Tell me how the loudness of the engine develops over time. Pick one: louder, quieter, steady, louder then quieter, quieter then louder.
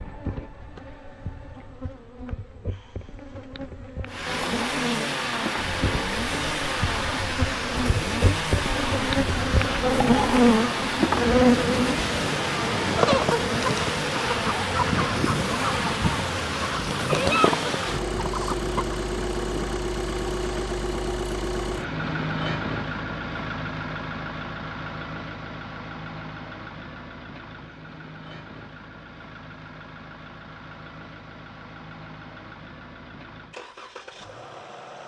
quieter.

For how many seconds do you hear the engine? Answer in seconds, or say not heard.
31 s.